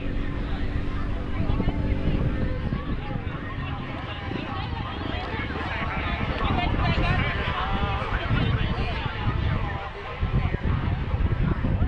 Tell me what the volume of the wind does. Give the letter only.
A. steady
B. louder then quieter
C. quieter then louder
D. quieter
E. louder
C.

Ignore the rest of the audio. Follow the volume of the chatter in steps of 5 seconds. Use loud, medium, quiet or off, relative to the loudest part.
medium, loud, medium.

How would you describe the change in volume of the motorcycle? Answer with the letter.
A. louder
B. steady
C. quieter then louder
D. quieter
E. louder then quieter
D.